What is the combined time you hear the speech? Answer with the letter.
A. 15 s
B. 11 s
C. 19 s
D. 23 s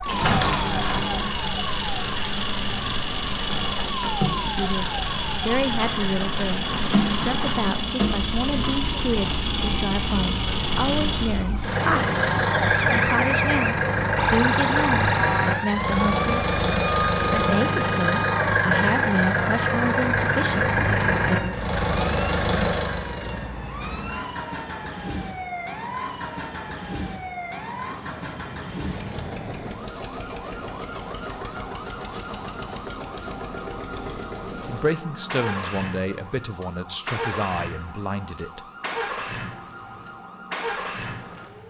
C.